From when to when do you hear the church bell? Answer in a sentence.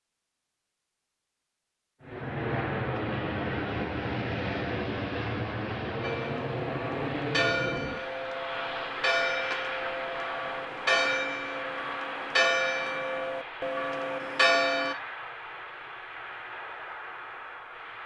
You can hear the church bell from 6.0 to 14.9 s.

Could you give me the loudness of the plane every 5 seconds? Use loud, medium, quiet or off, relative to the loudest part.
loud, loud, medium, medium.